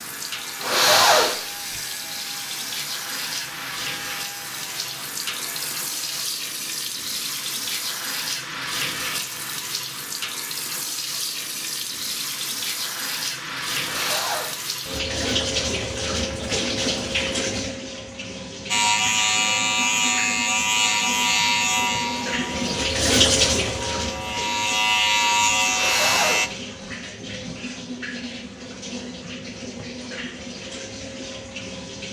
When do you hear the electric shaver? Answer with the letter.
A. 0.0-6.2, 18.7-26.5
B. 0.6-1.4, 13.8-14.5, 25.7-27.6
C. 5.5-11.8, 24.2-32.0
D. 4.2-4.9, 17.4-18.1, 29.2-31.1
A.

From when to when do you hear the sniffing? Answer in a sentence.
You can hear the sniffing from 0.6 to 1.4 s, from 13.8 to 14.5 s and from 25.7 to 27.6 s.